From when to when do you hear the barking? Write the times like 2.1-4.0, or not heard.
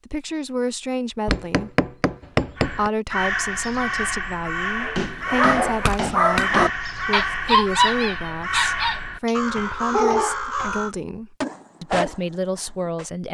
4.8-10.4, 11.4-13.1.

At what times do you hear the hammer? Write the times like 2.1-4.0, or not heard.
1.2-2.9, 5.0-6.7, 9.6-10.9.